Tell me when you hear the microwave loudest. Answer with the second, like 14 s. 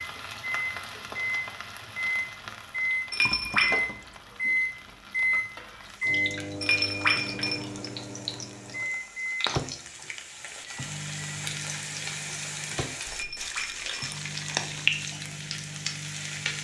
5 s.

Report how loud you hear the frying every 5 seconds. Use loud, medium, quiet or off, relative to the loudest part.
medium, medium, loud, loud.